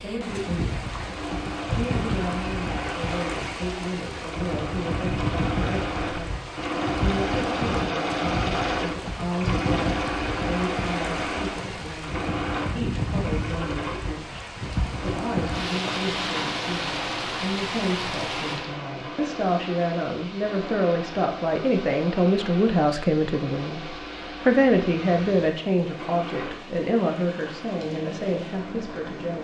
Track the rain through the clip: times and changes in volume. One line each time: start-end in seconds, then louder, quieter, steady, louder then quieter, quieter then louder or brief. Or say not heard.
0.0-29.3 quieter.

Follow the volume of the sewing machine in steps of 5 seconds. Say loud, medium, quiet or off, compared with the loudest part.
medium, loud, loud, medium, medium, medium.